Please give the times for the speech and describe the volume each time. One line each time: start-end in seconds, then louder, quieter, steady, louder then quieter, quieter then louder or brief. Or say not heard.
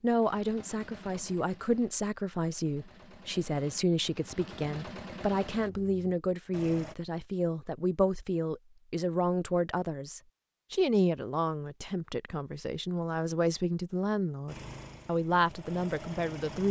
0.0-16.6 steady.